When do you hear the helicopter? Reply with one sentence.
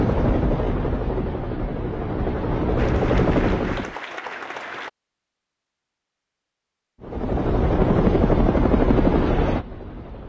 You can hear the helicopter from 0.0 to 4.0 s and from 7.0 to 10.2 s.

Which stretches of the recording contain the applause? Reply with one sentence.
The applause can be heard from 2.8 to 4.9 s.